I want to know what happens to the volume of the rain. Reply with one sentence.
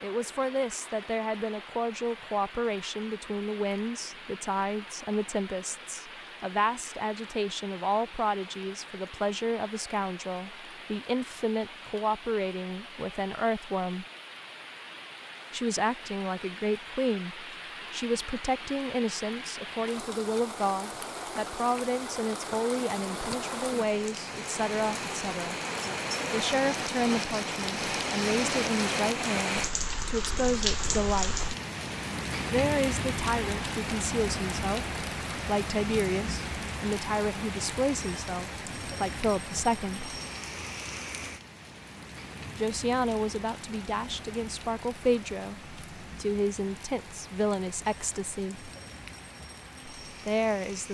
The volume of the rain goes up, then down.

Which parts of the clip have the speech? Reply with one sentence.
You can hear the speech from 0.0 to 14.1 s, from 15.5 to 25.6 s, from 26.3 to 31.4 s, from 32.5 to 40.1 s, from 42.5 to 48.7 s and from 50.0 to 50.8 s.